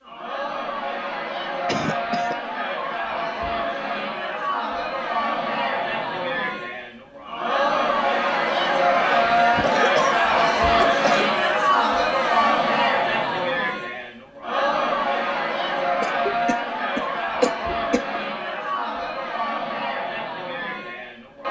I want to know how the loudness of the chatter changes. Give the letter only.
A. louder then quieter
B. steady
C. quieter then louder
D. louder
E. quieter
A.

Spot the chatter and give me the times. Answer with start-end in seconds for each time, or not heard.
0.0-21.4.